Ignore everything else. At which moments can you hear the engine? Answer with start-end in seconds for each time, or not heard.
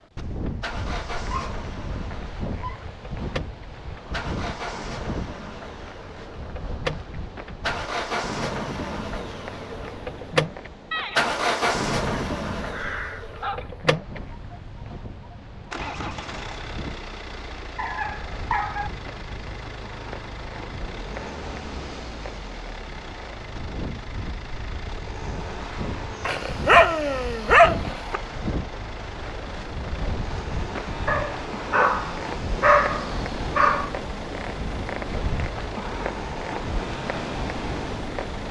0.0-38.4.